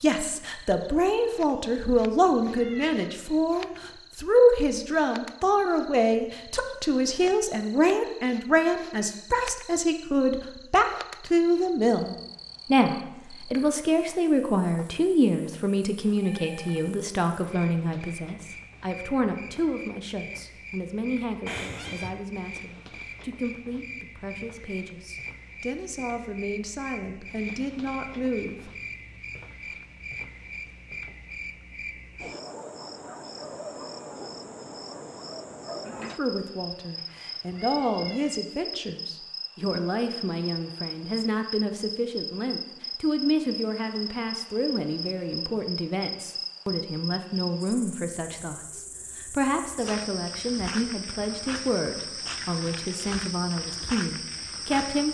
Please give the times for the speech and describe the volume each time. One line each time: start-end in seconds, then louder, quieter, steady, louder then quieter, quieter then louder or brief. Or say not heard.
0.0-28.7 quieter
36.1-55.1 steady.